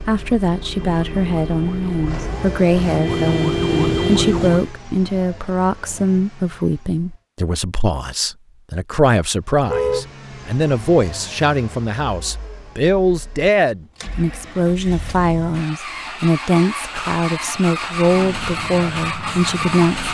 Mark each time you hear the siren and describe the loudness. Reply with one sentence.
You can hear the siren from 0.0 to 4.7 s, getting louder; and briefly from 18.0 to 20.0 s.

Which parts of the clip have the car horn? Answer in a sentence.
You can hear the car horn from 9.6 to 10.1 s.